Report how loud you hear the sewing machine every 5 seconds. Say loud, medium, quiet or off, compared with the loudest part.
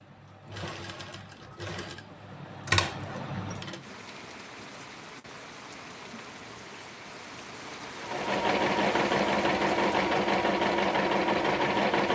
medium, loud, loud.